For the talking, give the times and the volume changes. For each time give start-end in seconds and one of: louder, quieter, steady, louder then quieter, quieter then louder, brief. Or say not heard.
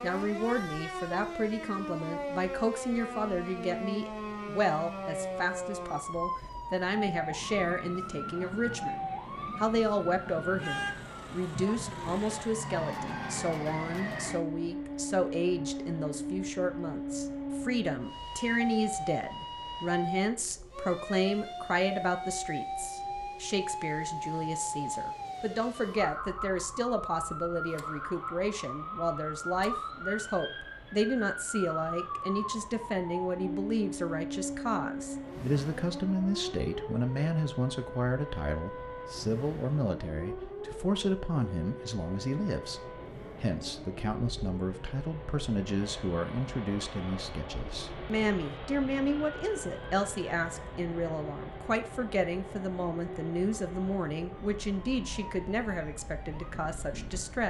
0.0-57.4 steady.